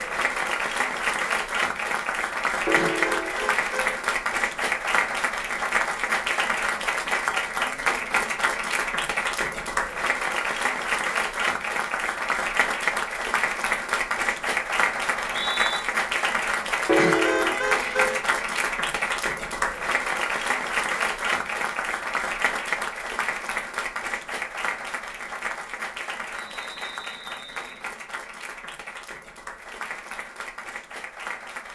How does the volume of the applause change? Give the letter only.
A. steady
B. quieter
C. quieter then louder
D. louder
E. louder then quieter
B.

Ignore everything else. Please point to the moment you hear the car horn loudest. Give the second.
17 s.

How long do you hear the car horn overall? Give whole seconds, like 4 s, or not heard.
3 s.